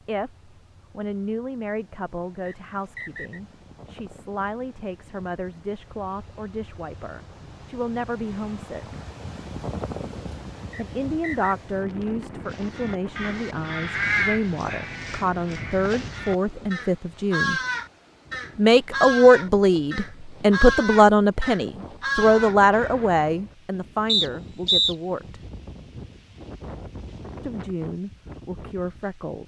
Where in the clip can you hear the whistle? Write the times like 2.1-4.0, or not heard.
2.5-3.4, 10.7-11.6, 24.1-24.9.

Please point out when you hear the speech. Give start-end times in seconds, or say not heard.
0.1-8.9, 10.8-17.6, 18.6-25.4, 27.4-29.4.